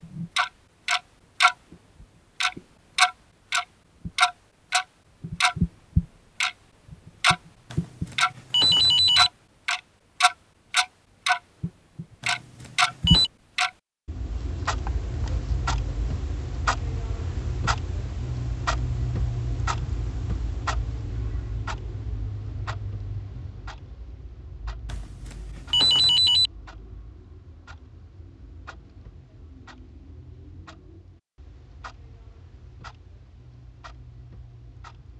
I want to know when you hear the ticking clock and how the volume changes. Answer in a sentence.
The ticking clock can be heard from 0.0 to 35.1 s, getting quieter.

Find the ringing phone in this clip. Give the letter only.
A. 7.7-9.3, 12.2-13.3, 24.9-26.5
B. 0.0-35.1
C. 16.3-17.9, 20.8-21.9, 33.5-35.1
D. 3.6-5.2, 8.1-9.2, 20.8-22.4
A.